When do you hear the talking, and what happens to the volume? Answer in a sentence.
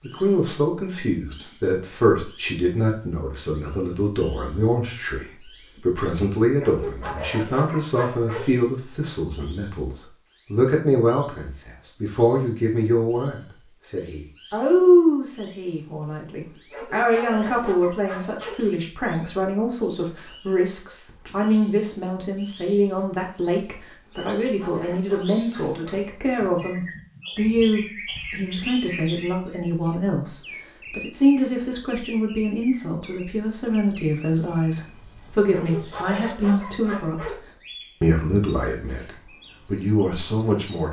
The talking can be heard from 0.0 to 37.4 s, at a steady volume; and briefly from 38.0 to 40.8 s.